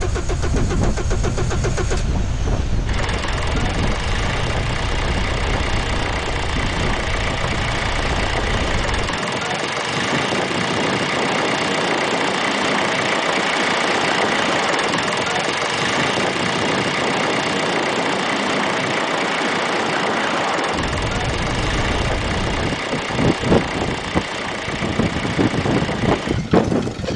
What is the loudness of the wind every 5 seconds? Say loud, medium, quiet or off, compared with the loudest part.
medium, medium, medium, medium, loud, loud.